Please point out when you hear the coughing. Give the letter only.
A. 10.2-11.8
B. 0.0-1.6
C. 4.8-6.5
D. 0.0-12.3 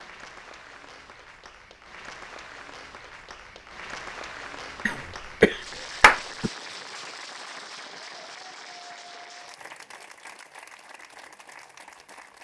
C.